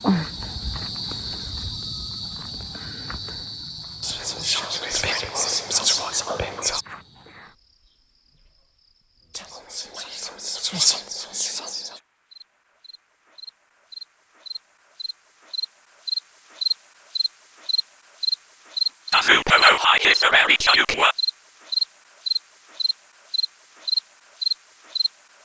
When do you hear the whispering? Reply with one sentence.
You can hear the whispering from 4.0 to 6.8 s, from 9.3 to 11.9 s and from 19.1 to 21.1 s.